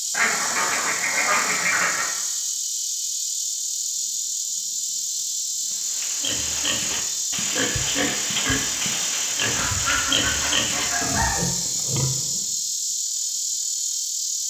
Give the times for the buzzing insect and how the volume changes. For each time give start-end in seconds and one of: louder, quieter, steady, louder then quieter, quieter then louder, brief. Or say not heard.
0.0-14.4 steady.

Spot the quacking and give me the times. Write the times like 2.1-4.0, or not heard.
0.1-2.1, 9.6-11.3.